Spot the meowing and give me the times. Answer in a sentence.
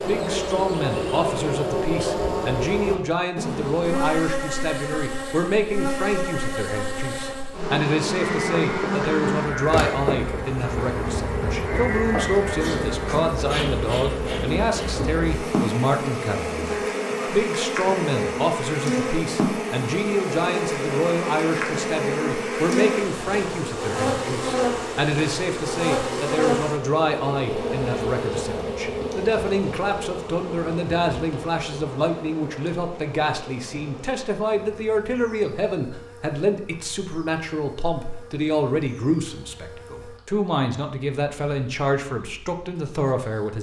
You can't hear the meowing here.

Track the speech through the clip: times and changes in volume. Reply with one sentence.
You can hear the speech from 0.0 to 43.5 s, at a steady volume.